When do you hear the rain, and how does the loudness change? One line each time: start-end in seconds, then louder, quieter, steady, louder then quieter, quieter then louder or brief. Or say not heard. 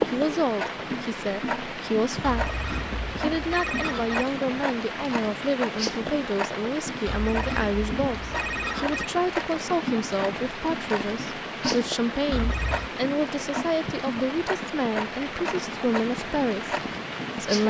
0.0-17.6 steady.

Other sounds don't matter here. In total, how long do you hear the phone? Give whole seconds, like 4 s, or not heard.
5 s.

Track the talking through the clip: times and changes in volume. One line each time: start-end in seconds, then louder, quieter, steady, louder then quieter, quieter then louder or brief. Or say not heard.
0.1-17.6 steady.